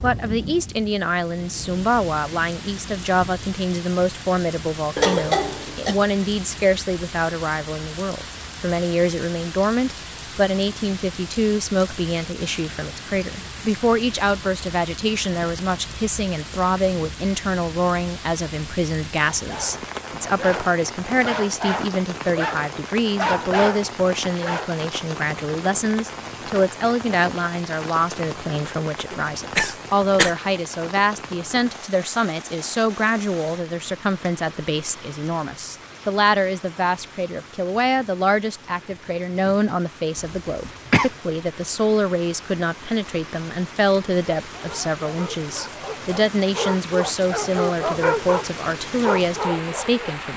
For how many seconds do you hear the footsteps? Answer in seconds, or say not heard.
not heard.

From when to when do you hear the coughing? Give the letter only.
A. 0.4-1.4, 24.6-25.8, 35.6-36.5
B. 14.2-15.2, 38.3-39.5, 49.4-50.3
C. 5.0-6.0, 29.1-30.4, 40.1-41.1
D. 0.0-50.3
C.